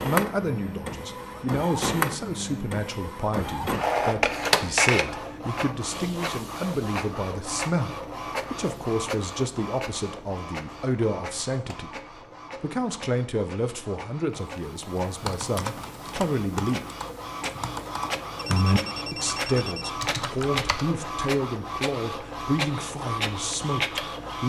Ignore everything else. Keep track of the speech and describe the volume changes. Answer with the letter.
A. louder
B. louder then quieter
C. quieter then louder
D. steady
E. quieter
D.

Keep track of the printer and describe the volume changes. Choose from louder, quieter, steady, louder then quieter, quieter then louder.
quieter then louder.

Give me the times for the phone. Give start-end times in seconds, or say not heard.
18.4-19.9.